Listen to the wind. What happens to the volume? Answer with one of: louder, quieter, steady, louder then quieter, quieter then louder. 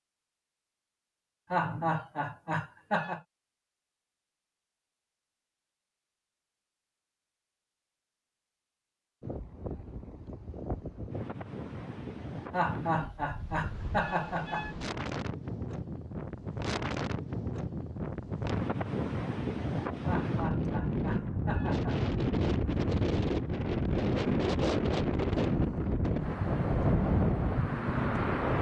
louder.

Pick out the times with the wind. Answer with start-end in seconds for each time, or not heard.
9.2-28.5.